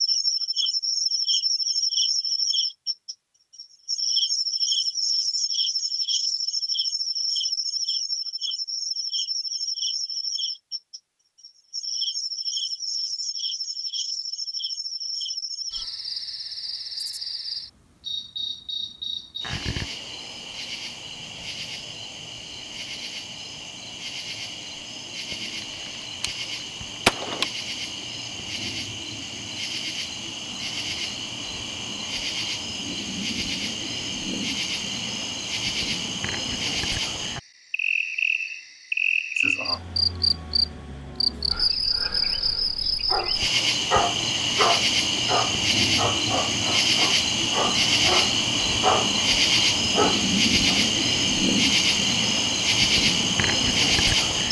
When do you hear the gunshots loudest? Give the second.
27 s.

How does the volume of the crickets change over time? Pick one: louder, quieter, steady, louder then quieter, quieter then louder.
quieter then louder.